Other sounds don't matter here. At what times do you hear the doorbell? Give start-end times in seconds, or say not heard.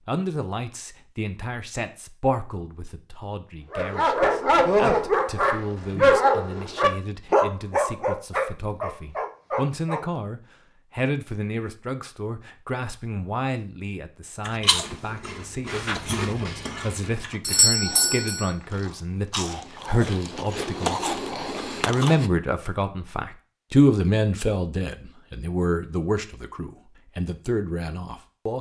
17.4-18.5.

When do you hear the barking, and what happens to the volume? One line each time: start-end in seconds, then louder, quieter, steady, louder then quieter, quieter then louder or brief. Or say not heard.
3.7-10.1 quieter.